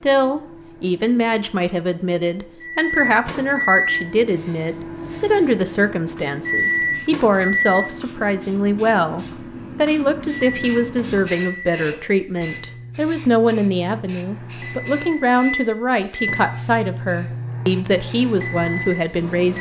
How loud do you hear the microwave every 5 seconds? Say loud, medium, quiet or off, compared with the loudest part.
loud, loud, medium, loud.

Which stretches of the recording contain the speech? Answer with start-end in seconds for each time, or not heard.
0.0-19.5.